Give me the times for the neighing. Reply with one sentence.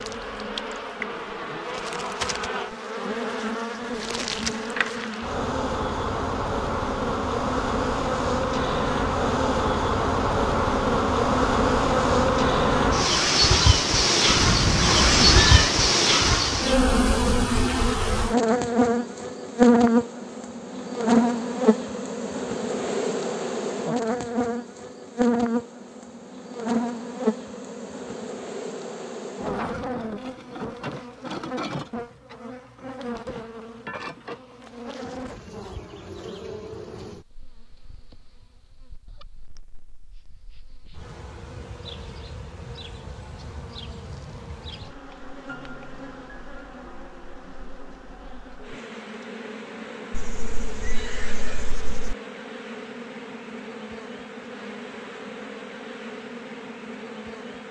The neighing can be heard from 14.2 to 15.8 s and from 50.1 to 52.1 s.